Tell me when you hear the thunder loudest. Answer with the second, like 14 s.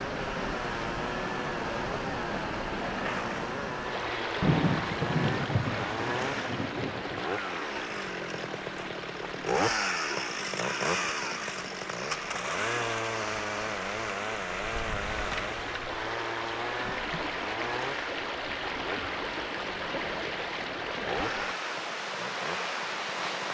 5 s.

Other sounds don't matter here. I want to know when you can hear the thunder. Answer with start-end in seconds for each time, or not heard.
4.4-7.2.